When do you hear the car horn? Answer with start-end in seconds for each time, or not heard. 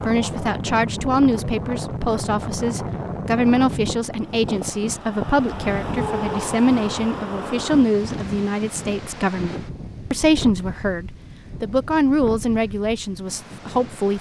5.5-6.3.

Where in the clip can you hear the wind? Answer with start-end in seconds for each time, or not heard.
0.0-14.1.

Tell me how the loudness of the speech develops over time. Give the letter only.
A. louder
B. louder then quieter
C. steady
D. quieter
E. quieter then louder
C.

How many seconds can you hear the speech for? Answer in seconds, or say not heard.
14 s.